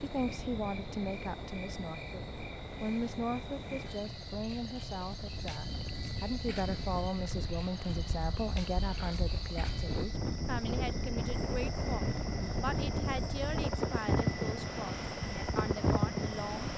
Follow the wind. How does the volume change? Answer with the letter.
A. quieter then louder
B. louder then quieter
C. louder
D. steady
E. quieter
C.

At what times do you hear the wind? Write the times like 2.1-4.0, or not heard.
0.0-16.7.